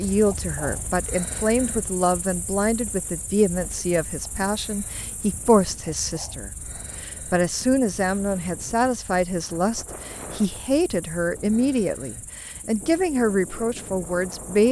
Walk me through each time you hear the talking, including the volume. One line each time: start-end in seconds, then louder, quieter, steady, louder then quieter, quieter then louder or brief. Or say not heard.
0.0-14.6 steady.